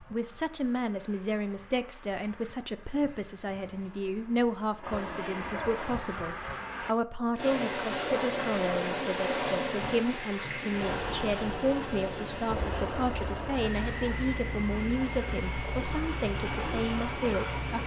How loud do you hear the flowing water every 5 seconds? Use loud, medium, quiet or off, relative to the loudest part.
off, loud, medium, medium.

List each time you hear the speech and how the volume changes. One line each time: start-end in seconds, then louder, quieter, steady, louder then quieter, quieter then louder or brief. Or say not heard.
0.0-17.8 steady.